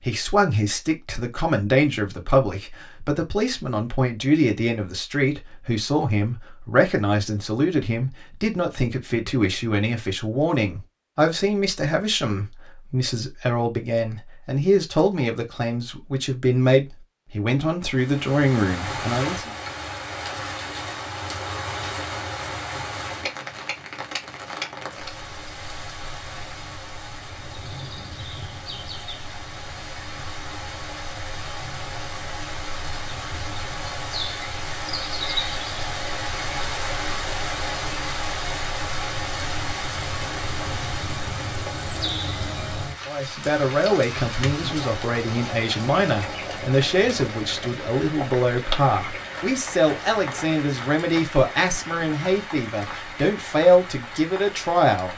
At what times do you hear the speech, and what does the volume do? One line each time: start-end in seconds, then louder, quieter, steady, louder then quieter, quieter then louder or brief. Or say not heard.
0.0-19.5 steady
43.0-55.1 steady.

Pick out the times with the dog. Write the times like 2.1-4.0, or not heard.
not heard.